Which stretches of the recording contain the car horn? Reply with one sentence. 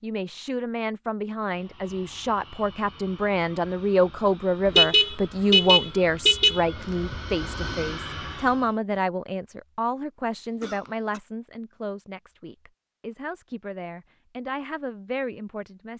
You can hear the car horn from 4.7 to 7.2 s.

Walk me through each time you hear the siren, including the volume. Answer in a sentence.
The siren can't be heard in this clip.